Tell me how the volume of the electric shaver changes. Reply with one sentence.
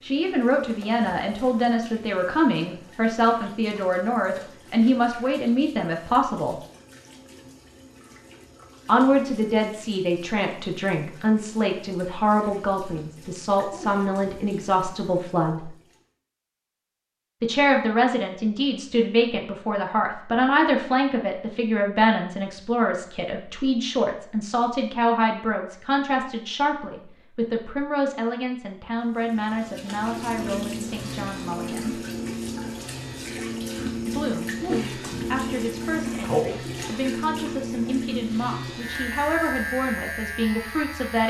The volume of the electric shaver stays about the same.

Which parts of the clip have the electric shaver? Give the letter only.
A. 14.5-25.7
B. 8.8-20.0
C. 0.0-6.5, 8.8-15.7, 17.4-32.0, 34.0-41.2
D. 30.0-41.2
D.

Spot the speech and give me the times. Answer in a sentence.
You can hear the speech from 0.0 to 6.5 s, from 8.8 to 15.7 s, from 17.4 to 32.0 s and from 34.0 to 41.2 s.